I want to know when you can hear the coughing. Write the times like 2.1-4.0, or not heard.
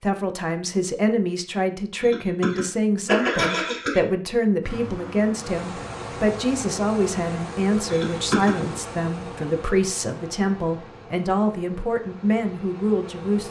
2.0-4.0, 7.9-8.6.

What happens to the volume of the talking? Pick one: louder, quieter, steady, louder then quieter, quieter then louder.
steady.